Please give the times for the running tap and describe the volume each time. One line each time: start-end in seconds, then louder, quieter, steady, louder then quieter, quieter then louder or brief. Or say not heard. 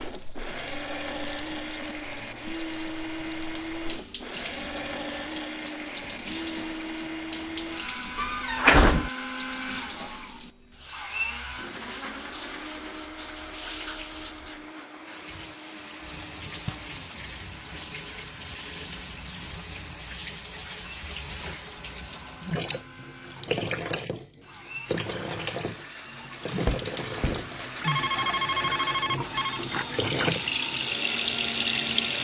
0.0-32.1 louder.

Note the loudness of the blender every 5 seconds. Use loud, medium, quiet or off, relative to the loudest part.
loud, loud, loud, quiet, medium, loud, loud.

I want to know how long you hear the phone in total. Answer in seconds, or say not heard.
2 s.